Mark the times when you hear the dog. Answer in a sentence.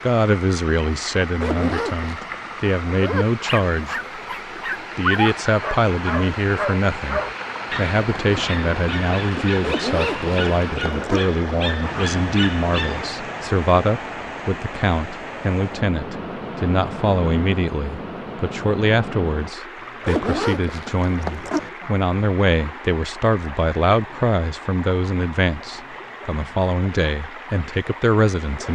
The dog can be heard from 2.9 to 13.1 s.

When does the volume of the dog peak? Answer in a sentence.
The volume of the dog peaks at 5 seconds.